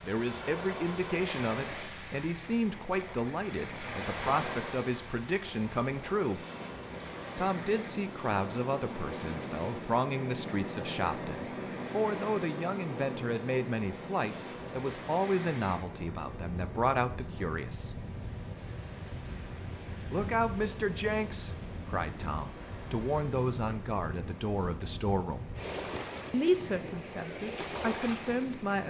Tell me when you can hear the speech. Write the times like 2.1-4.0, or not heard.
0.0-6.5, 7.3-17.9, 20.1-25.4, 26.3-28.8.